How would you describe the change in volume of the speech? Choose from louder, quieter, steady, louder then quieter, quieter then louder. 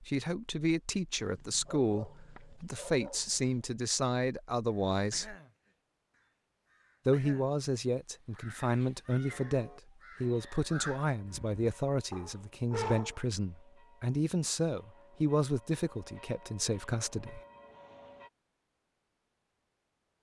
steady.